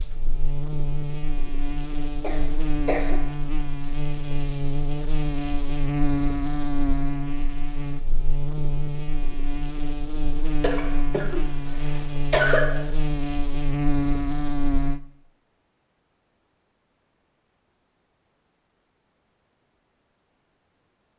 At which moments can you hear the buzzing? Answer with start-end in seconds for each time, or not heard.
0.0-15.0.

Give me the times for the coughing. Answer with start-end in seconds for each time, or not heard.
2.2-3.1, 10.6-12.7.